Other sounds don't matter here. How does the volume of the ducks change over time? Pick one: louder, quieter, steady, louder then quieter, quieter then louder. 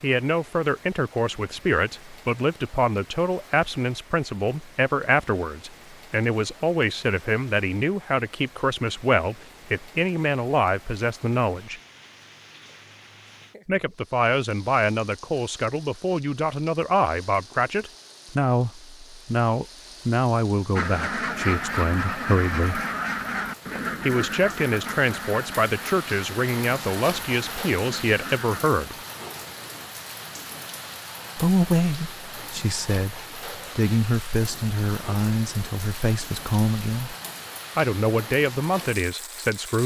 quieter.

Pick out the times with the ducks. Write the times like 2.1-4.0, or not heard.
20.8-28.7.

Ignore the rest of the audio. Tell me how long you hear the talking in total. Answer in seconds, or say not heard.
34 s.